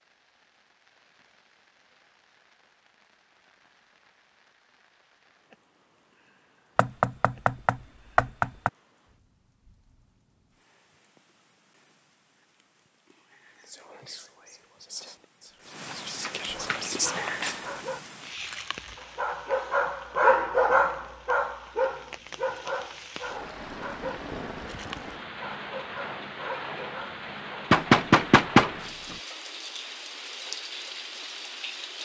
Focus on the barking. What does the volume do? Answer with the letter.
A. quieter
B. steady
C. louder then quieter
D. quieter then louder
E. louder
C.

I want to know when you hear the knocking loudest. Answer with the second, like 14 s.
28 s.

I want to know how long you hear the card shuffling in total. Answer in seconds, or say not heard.
2 s.